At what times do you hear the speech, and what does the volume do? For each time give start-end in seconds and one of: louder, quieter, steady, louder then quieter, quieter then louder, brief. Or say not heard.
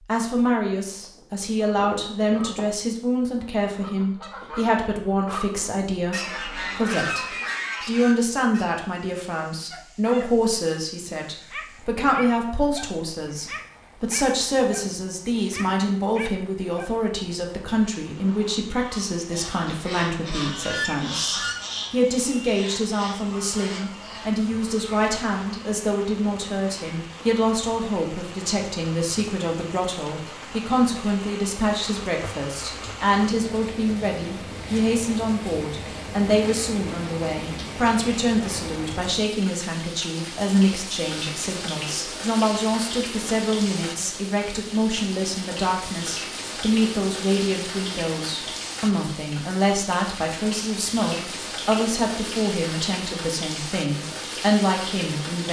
0.1-55.4 steady.